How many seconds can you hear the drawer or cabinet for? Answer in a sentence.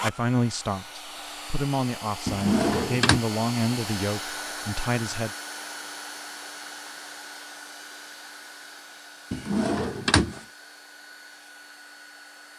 The drawer or cabinet can be heard for 2 seconds in total.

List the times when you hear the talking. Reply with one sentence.
The talking can be heard from 0.0 to 5.3 s.